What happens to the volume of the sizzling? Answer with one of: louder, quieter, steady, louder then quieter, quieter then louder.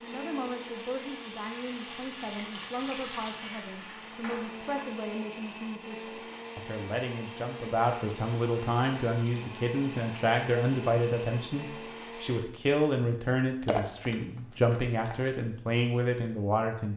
louder then quieter.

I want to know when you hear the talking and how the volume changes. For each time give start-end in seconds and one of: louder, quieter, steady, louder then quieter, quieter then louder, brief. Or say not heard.
0.0-16.9 louder.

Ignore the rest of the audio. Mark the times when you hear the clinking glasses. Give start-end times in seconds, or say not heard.
13.7-15.2.